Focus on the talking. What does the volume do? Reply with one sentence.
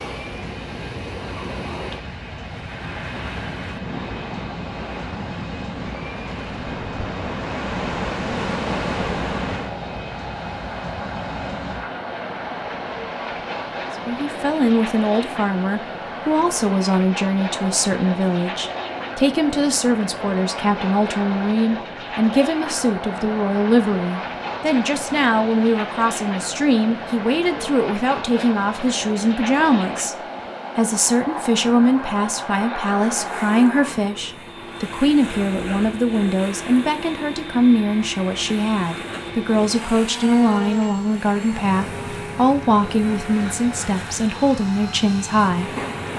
The volume of the talking stays about the same.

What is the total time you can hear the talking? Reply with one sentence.
You can hear the talking for 31 seconds altogether.